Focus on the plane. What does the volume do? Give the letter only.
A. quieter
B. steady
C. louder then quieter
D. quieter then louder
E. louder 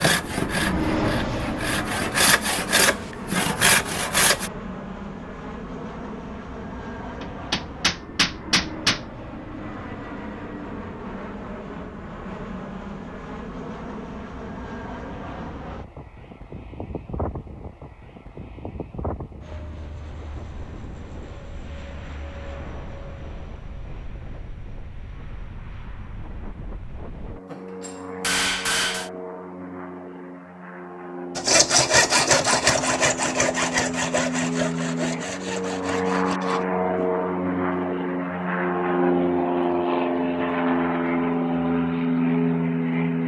D.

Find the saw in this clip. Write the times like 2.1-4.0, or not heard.
0.0-4.5, 31.4-36.6.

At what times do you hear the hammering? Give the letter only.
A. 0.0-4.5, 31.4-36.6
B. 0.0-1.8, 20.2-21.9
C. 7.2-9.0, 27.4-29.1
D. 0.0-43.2
C.